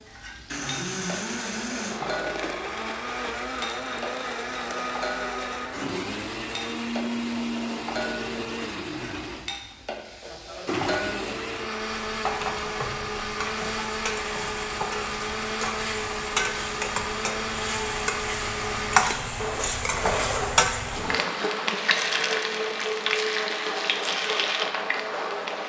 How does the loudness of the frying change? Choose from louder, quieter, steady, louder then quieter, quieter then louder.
louder.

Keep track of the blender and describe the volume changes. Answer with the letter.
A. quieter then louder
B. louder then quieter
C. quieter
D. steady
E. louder
D.